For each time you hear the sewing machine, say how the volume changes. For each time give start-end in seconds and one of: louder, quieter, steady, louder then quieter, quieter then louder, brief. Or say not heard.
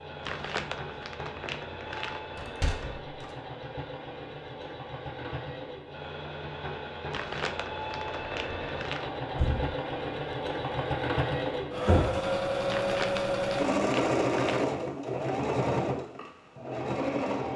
0.0-17.5 louder.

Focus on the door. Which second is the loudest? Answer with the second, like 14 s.
12 s.